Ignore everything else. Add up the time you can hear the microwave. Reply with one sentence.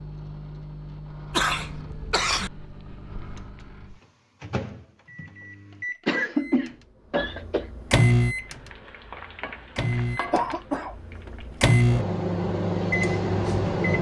The microwave can be heard for 14 seconds in total.